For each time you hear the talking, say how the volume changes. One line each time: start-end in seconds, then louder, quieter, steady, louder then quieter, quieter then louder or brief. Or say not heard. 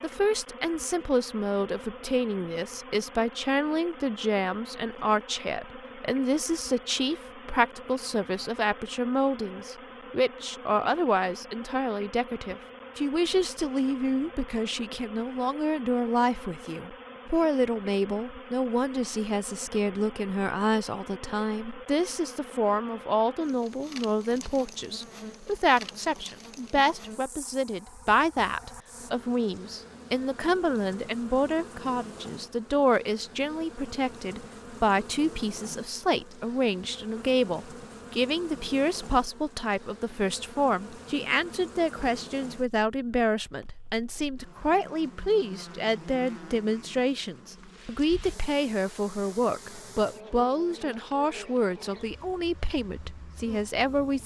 0.0-54.2 steady.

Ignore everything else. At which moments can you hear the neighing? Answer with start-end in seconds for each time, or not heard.
not heard.